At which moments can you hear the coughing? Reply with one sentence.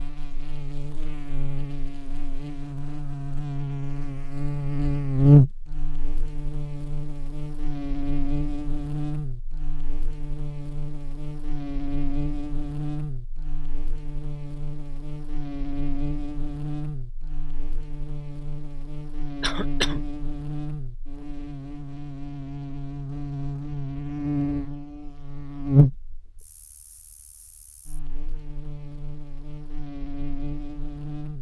You can hear the coughing from 19.4 to 20.0 s.